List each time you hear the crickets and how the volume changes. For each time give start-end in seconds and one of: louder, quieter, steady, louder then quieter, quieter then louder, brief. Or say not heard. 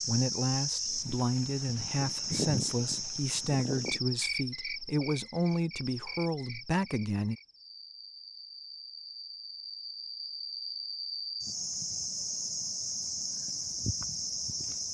0.0-14.9 quieter then louder.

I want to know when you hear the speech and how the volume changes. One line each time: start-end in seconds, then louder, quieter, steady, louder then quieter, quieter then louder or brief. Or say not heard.
0.1-7.4 steady.